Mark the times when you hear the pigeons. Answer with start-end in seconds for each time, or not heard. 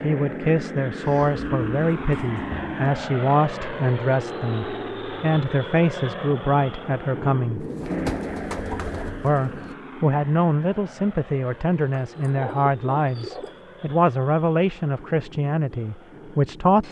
1.1-3.0, 7.6-9.8, 12.1-13.6.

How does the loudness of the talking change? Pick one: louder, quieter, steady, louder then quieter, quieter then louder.
steady.